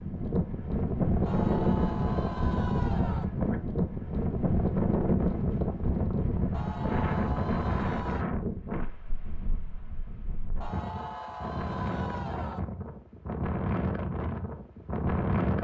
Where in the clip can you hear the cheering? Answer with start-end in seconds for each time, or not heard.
1.2-3.2, 6.5-8.2, 10.6-12.6.